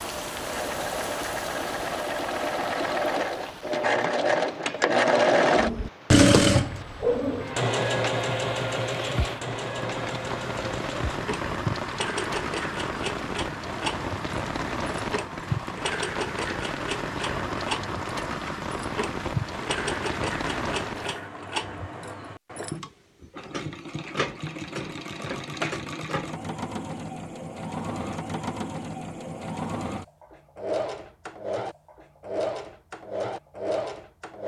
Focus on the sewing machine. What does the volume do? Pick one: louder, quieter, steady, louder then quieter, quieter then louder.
quieter.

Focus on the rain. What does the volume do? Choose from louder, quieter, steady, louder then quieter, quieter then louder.
quieter then louder.